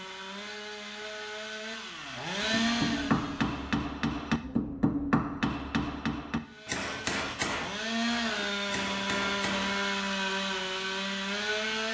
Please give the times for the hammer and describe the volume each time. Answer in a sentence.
You can hear the hammer from 2.4 to 9.9 s, getting quieter.